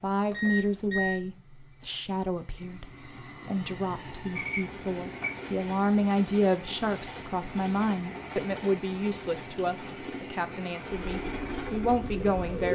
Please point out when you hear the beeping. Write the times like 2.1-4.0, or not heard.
0.3-1.2, 4.3-5.5, 9.4-10.3.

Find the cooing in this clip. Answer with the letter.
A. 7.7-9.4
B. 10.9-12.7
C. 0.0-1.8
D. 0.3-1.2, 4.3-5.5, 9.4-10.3
B.